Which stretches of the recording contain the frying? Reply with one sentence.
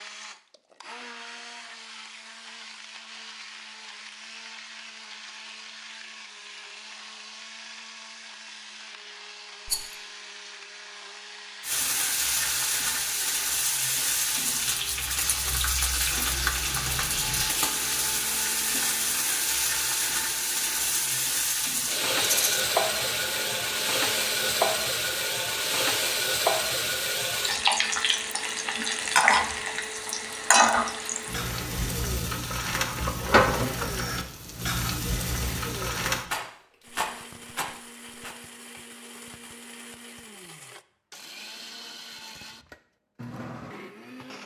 You can hear the frying from 11.6 to 36.2 s.